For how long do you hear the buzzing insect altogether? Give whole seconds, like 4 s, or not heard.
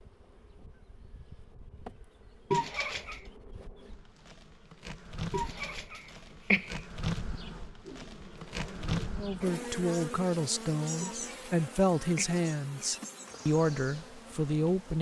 15 s.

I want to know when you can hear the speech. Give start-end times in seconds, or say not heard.
9.2-14.9.